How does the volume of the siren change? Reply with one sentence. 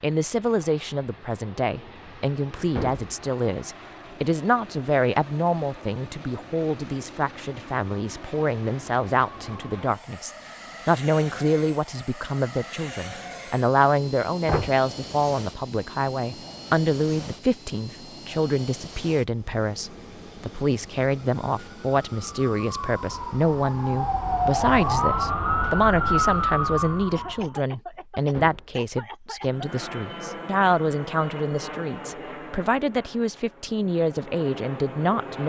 The volume of the siren goes up.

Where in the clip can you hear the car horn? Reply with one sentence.
You can't hear the car horn here.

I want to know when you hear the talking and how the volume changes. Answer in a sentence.
You can hear the talking from 0.0 to 35.4 s, at a steady volume.